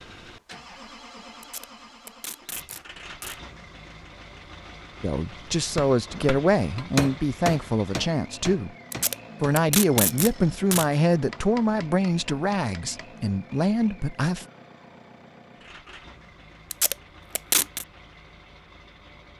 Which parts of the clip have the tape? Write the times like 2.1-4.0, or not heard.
1.4-3.4, 8.9-10.8, 16.7-17.9.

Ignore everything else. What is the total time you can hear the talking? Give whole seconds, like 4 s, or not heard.
9 s.